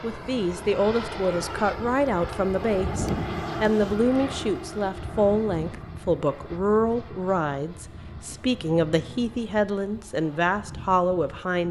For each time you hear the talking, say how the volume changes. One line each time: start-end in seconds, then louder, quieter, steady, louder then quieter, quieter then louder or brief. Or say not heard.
0.0-11.6 steady.